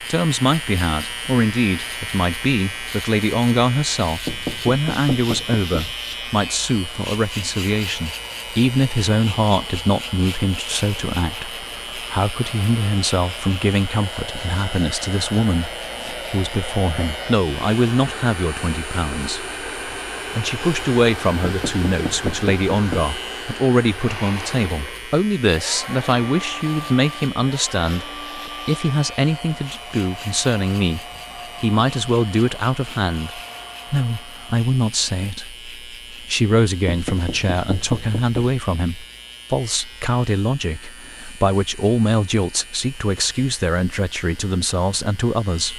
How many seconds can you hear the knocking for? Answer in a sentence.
The knocking can be heard for 5 seconds in total.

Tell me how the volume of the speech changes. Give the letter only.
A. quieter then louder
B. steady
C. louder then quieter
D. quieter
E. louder
B.